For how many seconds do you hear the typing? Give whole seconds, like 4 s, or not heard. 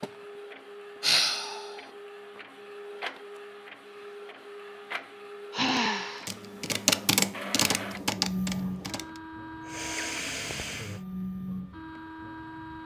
3 s.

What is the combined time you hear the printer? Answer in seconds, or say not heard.
13 s.